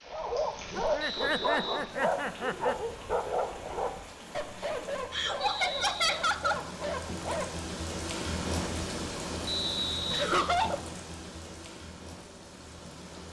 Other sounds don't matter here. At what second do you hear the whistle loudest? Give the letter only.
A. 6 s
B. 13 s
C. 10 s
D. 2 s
C.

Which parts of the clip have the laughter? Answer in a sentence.
The laughter can be heard from 0.8 to 2.8 s, from 5.1 to 6.7 s and from 10.1 to 10.8 s.